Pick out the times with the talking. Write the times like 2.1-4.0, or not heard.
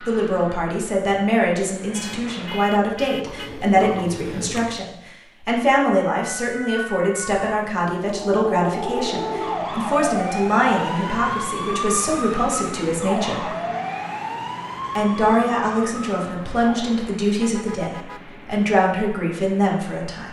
0.1-13.4, 14.9-20.2.